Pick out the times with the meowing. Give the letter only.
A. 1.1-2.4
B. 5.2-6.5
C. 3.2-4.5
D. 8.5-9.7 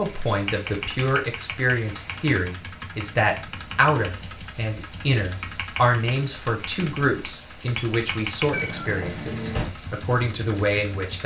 D.